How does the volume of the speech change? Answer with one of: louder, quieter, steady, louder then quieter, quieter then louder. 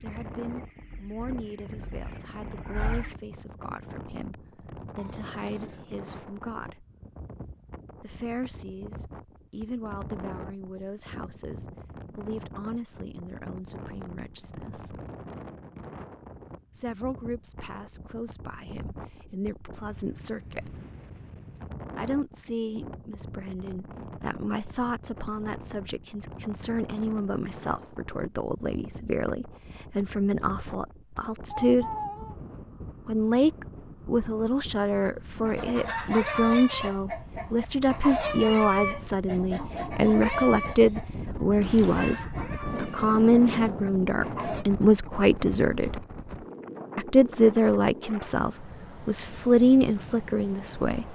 louder.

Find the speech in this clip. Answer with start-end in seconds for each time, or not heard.
0.0-6.8, 8.0-15.0, 16.8-20.8, 21.9-31.9, 33.0-46.0, 47.0-51.0.